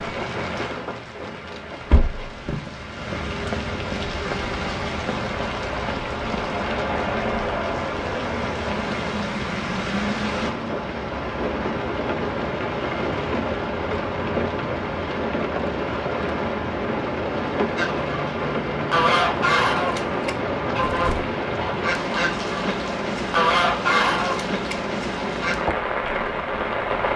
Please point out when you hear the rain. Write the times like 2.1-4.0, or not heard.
0.0-27.1.